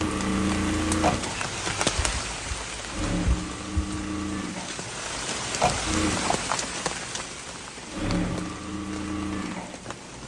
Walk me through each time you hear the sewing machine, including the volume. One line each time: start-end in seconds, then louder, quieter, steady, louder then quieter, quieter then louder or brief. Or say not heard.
0.0-10.2 quieter then louder.